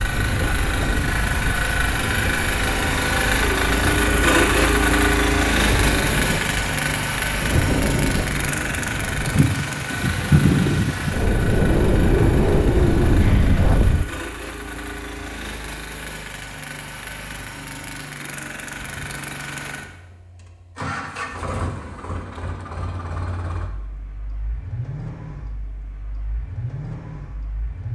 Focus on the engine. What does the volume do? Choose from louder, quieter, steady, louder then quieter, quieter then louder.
quieter.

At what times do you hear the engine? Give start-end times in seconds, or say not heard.
0.0-27.8.